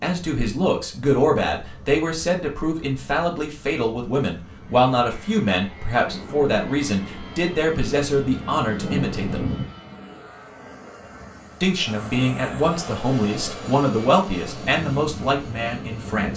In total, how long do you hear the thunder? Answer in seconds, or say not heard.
4 s.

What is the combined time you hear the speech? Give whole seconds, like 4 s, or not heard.
14 s.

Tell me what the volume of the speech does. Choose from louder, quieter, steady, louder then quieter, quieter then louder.
steady.